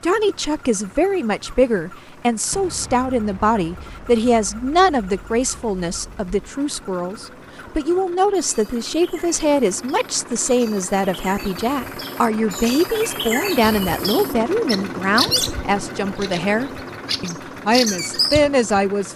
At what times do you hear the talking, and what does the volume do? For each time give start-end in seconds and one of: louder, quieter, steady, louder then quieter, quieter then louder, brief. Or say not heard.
0.0-19.1 steady.